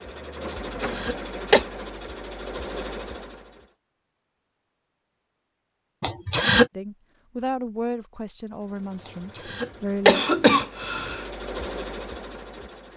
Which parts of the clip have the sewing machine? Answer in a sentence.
You can hear the sewing machine from 0.0 to 3.8 s and from 8.5 to 12.9 s.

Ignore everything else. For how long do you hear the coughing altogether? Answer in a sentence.
The coughing can be heard for 4 seconds in total.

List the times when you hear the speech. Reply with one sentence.
The speech can be heard from 6.7 to 10.2 s.